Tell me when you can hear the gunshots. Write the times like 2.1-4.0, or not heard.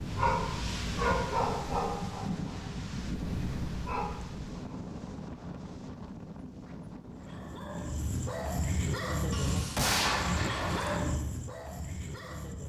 9.3-11.0.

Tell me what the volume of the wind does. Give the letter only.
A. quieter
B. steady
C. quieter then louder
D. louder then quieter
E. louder
A.